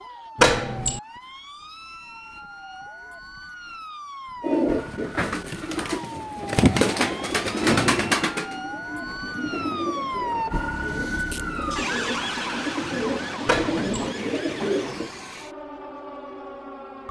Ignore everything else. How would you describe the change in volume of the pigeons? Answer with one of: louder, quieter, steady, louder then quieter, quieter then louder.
quieter then louder.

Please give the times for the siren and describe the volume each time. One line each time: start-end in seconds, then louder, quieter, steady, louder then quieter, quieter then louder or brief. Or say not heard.
0.0-17.0 louder then quieter.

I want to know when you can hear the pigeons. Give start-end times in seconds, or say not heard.
4.4-15.1.